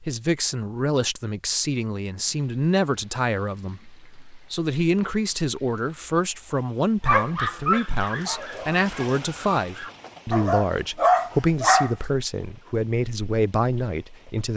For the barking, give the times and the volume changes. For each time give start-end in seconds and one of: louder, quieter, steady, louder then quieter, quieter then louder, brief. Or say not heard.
7.0-11.9 quieter then louder.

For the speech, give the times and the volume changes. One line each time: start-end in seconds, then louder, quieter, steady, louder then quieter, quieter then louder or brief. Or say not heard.
0.0-14.5 steady.